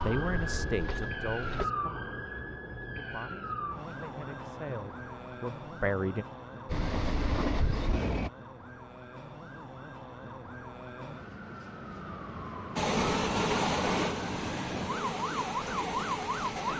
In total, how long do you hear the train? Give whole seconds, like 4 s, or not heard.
7 s.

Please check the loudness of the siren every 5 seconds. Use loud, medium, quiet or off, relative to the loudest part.
loud, medium, medium, loud.